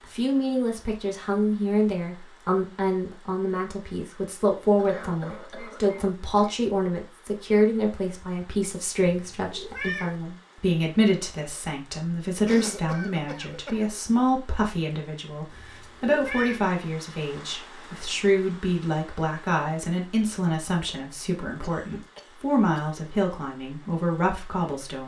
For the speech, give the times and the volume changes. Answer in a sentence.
You can hear the speech from 0.1 to 25.0 s, at a steady volume.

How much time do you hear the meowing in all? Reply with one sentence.
You can hear the meowing for 2 seconds altogether.